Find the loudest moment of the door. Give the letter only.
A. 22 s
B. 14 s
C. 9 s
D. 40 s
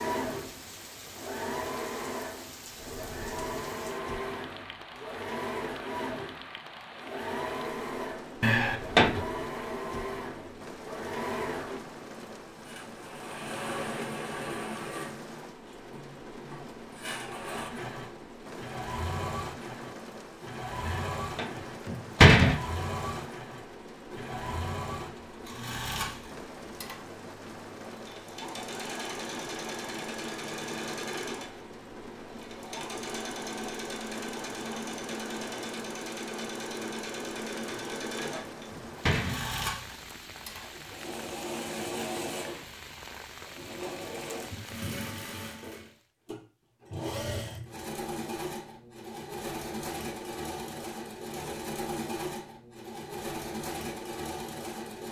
A.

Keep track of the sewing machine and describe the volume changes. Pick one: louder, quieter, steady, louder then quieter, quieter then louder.
steady.